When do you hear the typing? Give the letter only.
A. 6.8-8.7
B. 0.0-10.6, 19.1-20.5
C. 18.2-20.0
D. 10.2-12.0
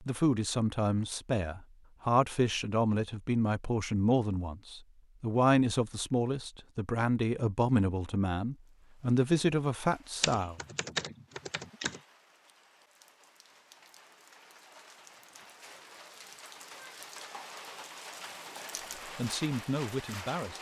D.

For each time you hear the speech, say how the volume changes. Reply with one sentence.
The speech can be heard from 0.0 to 10.6 s, at a steady volume; and briefly from 19.1 to 20.5 s.